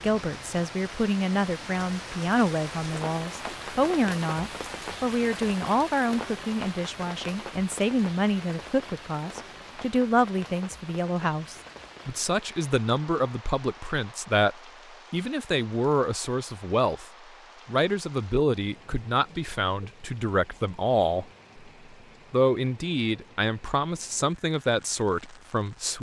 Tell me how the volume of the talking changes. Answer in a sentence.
The loudness of the talking stays about the same.